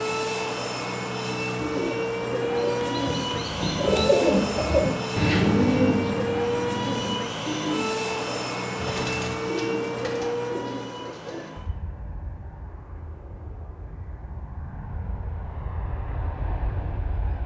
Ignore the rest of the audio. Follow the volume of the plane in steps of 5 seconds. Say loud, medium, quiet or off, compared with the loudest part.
loud, loud, medium, medium.